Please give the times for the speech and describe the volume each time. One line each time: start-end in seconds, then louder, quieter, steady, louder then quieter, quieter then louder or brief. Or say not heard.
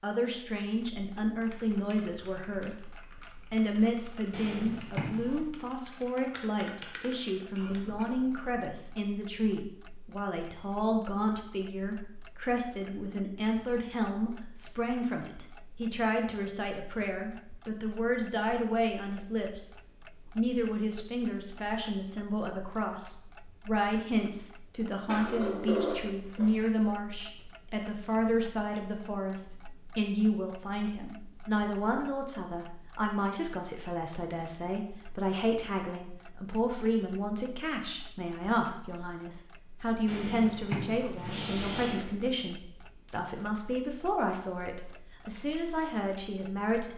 0.0-2.8 brief
3.5-19.7 steady
20.4-46.9 steady.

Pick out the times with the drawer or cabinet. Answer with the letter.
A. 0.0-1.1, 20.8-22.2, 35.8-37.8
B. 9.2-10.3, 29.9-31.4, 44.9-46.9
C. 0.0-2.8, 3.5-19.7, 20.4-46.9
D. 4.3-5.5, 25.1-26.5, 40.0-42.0
D.